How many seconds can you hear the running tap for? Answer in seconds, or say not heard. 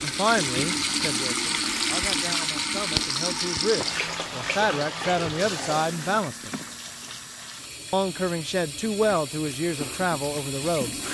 11 s.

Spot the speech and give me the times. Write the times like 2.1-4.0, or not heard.
0.0-6.5, 7.9-10.9.